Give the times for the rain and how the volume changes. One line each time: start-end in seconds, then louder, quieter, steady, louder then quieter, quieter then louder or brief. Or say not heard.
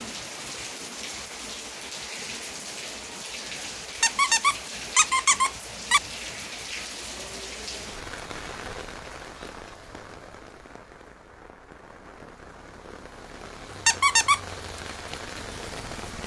0.0-16.2 quieter then louder.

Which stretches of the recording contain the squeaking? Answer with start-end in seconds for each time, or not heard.
4.0-6.0, 13.8-14.4.